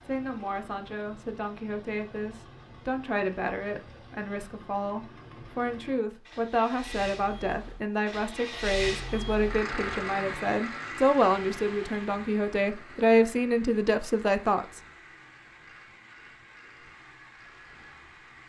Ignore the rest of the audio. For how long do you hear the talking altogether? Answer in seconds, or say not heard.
15 s.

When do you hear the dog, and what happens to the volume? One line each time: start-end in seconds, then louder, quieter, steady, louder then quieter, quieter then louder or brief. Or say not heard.
not heard.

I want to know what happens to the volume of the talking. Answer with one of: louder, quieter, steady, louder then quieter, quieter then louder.
louder.